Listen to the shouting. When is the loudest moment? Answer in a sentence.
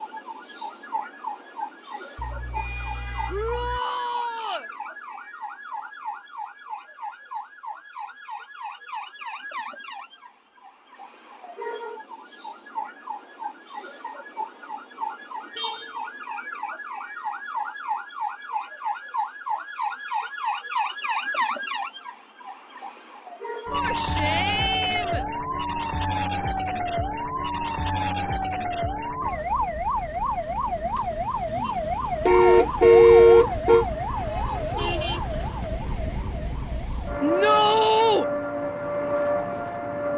The loudest moment of the shouting is at 38 seconds.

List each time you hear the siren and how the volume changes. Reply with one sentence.
You can hear the siren from 0.0 to 40.1 s, getting louder.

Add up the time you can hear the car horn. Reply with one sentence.
The car horn can be heard for 4 seconds in total.